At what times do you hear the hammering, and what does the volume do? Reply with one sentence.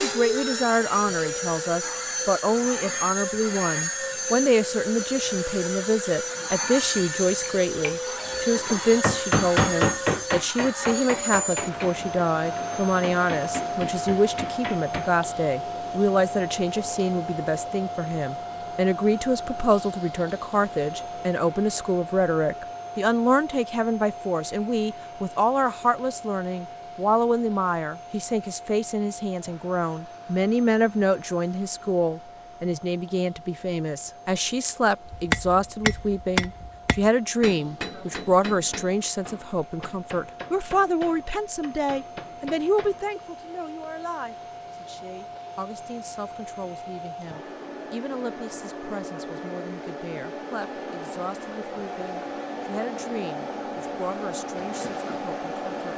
You can hear the hammering from 7.2 to 15.2 s, getting louder then quieter; and from 35.1 to 43.1 s, getting quieter.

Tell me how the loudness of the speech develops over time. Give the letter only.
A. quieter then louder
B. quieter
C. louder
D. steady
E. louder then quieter
B.